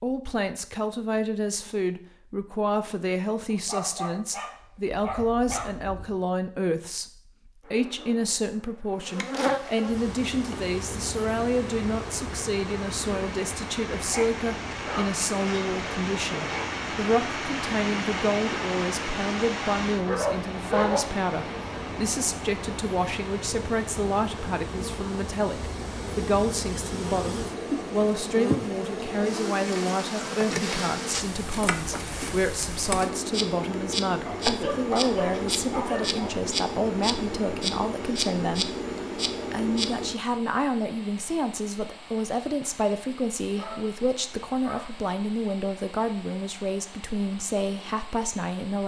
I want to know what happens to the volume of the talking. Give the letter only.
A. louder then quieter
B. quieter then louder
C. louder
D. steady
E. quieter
D.